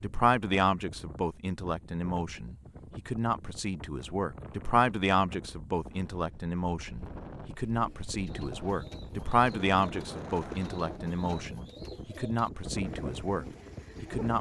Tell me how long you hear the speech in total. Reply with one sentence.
The speech can be heard for 14 seconds in total.